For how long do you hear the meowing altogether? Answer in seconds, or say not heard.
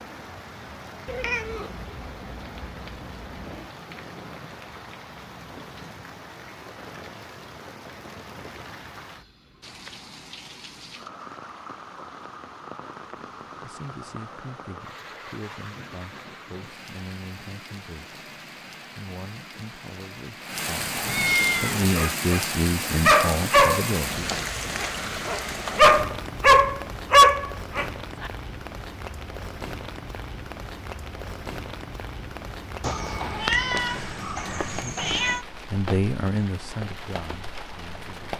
6 s.